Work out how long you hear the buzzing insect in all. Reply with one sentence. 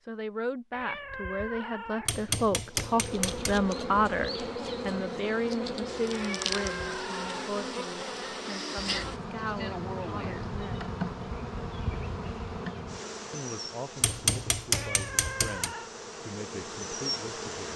The buzzing insect can be heard for 15 seconds in total.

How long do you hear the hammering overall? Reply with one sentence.
You can hear the hammering for 3 seconds altogether.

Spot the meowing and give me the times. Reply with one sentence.
The meowing can be heard from 0.7 to 2.1 s, from 6.1 to 7.5 s and from 14.7 to 15.9 s.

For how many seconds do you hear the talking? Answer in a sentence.
The talking can be heard for 15 seconds in total.